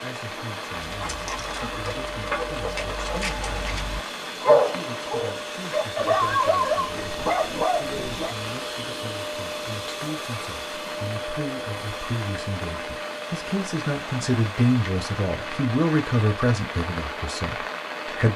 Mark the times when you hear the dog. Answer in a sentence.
You can hear the dog from 0.8 to 8.3 s.